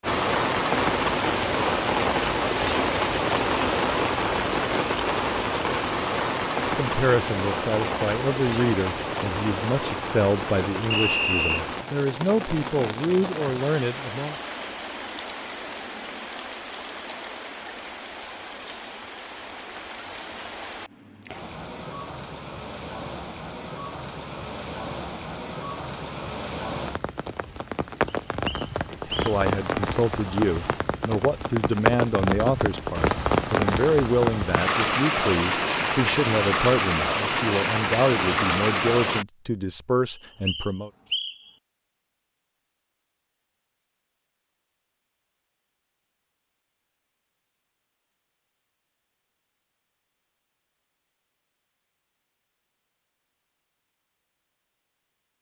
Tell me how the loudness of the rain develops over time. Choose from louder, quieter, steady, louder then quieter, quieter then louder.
quieter then louder.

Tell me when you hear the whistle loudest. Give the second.
11 s.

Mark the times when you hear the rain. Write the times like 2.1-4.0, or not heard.
0.0-39.2.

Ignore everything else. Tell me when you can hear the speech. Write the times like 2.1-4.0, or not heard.
6.5-14.3, 29.1-40.9.